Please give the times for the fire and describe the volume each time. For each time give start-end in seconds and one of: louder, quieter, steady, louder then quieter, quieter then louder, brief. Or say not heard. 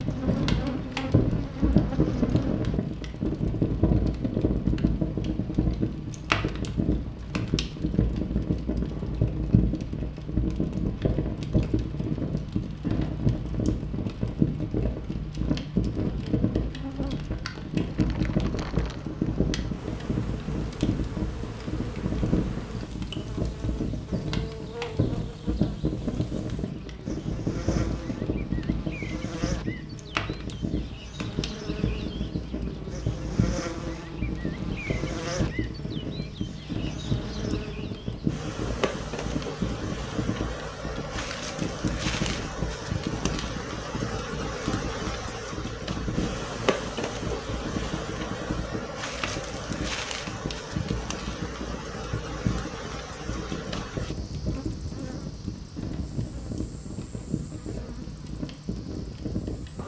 0.0-59.8 quieter.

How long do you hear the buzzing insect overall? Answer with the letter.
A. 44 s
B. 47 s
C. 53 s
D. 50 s
B.